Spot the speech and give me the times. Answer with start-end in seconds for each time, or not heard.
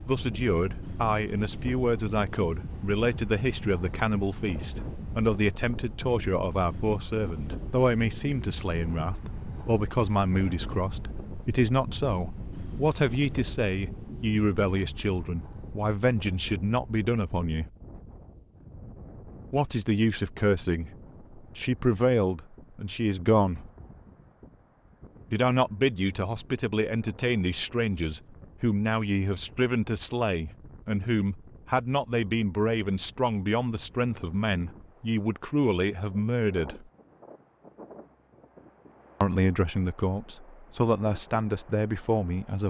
0.1-17.6, 19.5-23.7, 25.3-36.9, 39.2-42.6.